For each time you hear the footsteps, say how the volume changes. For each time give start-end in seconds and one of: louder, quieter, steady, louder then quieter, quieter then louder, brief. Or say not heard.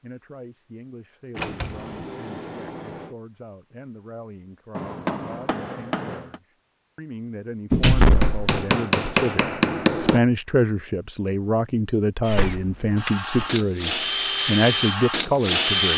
not heard.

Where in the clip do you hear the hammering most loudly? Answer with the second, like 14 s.
10 s.